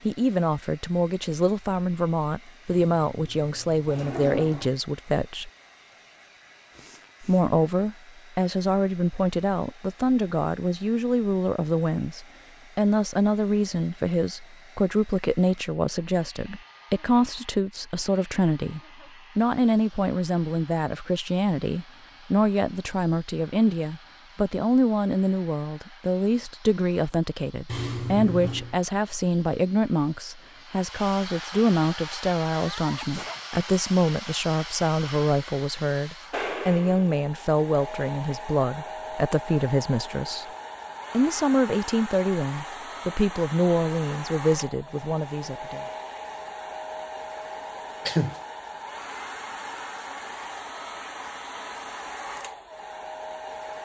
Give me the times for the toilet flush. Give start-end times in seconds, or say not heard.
2.6-4.7, 27.6-28.8.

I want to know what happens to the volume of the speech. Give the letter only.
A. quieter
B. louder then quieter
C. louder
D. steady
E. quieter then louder
D.